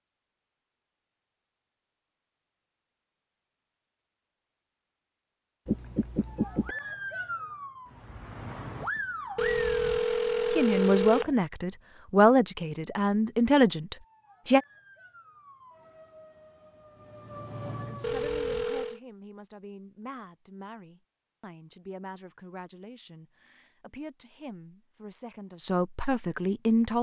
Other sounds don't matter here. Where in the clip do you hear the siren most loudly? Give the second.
9 s.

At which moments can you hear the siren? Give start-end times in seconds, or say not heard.
6.2-9.7, 13.9-18.4.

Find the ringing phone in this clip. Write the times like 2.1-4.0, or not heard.
5.7-6.8, 9.3-11.3, 18.0-19.0.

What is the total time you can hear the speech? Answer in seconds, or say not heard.
13 s.